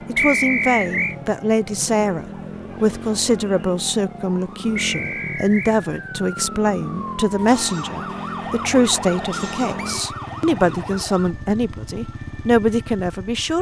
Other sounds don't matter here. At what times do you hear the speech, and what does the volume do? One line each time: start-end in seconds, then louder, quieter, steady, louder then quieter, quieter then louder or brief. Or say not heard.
0.1-13.5 steady.